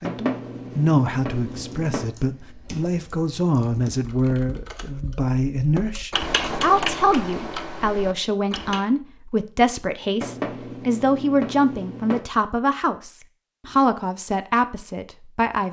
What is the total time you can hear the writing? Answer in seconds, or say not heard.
4 s.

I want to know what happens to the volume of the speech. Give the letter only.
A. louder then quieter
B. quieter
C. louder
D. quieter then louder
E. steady
E.